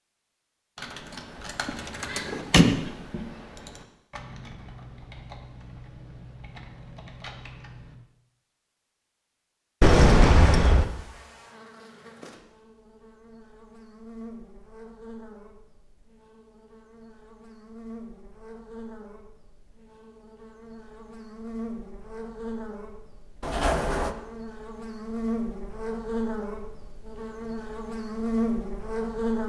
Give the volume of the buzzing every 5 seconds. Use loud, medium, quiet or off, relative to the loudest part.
off, off, quiet, quiet, medium, loud.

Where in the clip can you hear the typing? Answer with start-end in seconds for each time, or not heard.
0.8-8.0.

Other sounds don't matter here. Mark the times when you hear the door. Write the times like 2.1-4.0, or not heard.
1.6-2.9, 9.8-10.8, 23.4-24.1.